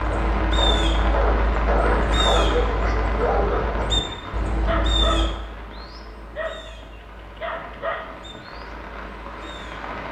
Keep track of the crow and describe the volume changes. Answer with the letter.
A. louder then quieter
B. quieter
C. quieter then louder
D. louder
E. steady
B.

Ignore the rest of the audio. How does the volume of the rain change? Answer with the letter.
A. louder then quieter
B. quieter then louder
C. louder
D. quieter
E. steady
B.